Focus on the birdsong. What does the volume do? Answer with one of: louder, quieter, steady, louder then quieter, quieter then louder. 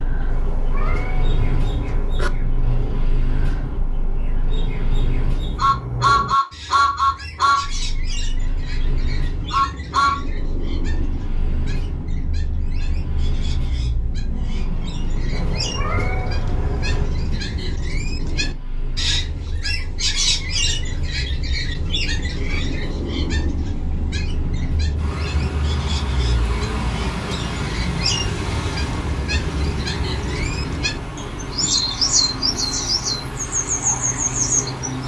louder.